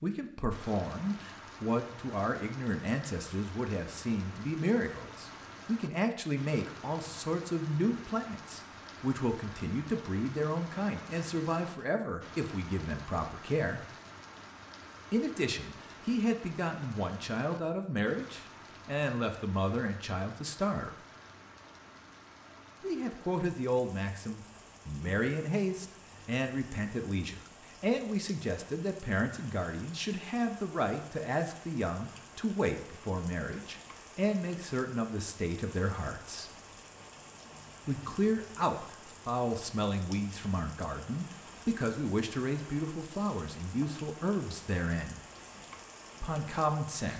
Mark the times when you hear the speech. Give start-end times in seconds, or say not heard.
0.0-13.8, 15.1-20.9, 22.8-36.5, 37.9-45.2, 46.2-47.1.